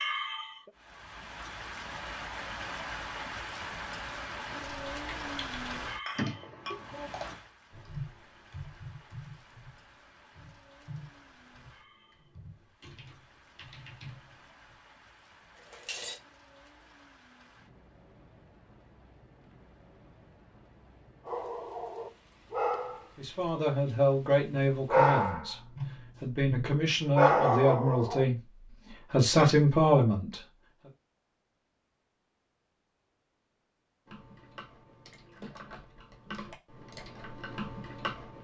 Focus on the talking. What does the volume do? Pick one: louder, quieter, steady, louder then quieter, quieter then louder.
quieter then louder.